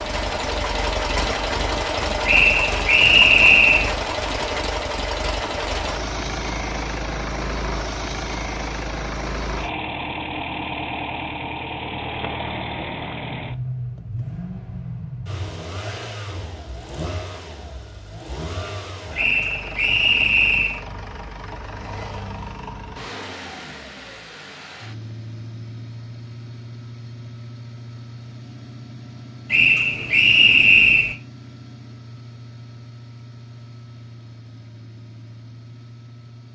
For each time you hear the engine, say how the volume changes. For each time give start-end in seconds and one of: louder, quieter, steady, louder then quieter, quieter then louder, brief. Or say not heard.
0.0-36.5 quieter.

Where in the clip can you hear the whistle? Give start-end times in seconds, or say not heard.
2.2-3.9, 19.1-20.8, 29.5-31.1.